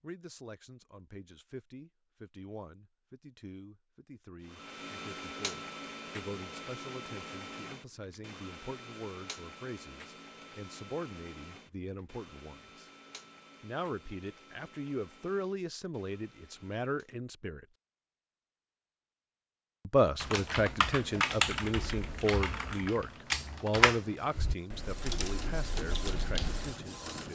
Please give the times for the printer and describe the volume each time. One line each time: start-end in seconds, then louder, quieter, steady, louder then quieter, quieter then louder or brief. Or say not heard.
4.4-17.1 quieter
24.5-27.2 brief.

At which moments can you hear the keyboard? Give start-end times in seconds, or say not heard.
20.2-26.8.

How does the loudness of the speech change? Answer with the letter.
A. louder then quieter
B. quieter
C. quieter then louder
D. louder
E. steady
D.